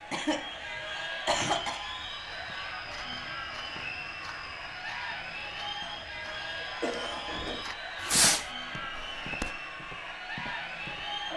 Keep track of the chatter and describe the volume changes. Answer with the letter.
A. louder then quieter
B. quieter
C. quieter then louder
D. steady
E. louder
D.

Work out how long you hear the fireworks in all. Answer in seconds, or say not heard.
2 s.